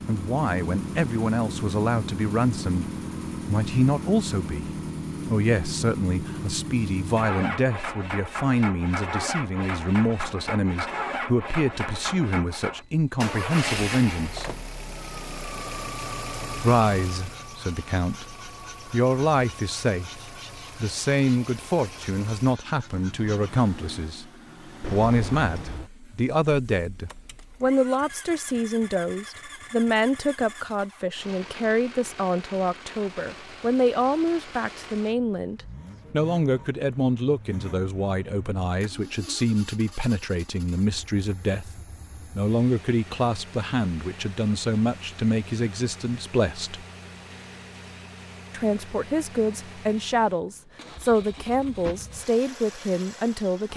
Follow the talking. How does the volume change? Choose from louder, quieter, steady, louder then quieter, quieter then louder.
steady.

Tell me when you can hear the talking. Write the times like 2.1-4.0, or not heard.
0.1-14.6, 16.6-24.2, 24.9-46.9, 48.5-53.7.